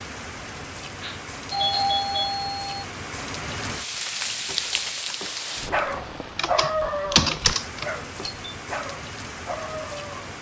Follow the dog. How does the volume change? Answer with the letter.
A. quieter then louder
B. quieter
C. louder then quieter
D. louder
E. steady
B.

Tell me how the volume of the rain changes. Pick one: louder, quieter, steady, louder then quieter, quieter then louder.
louder then quieter.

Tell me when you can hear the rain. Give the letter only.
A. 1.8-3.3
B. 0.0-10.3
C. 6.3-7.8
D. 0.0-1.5
B.